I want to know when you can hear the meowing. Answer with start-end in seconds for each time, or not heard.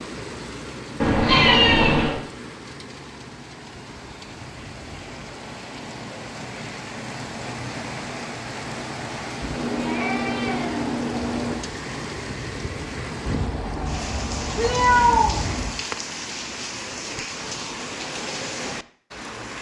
1.0-2.2, 9.6-11.6, 13.2-15.8.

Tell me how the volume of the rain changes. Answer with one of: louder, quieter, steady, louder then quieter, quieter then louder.
louder.